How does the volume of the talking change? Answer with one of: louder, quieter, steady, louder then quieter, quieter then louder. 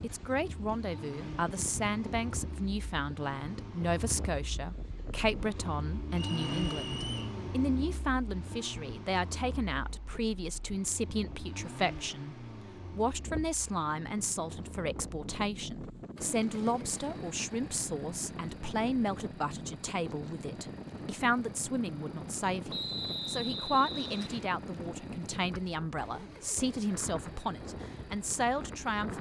steady.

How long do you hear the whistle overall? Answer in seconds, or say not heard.
3 s.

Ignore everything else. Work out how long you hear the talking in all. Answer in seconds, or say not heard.
29 s.